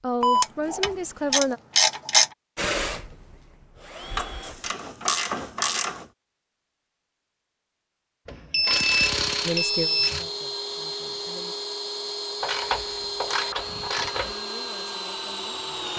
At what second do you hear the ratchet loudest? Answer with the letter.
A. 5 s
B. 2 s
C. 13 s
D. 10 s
B.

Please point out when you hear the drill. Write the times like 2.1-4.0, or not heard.
2.5-4.7, 9.2-15.9.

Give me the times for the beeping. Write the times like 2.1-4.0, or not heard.
0.2-0.9, 8.3-10.2.